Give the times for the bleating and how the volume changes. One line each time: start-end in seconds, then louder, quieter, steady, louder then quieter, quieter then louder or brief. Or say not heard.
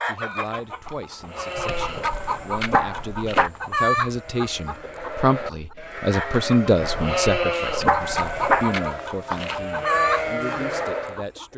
1.2-11.2 louder.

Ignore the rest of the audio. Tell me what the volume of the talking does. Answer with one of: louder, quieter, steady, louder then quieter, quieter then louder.
louder then quieter.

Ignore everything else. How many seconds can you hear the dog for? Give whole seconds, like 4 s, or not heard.
4 s.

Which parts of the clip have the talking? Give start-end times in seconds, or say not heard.
0.0-11.5.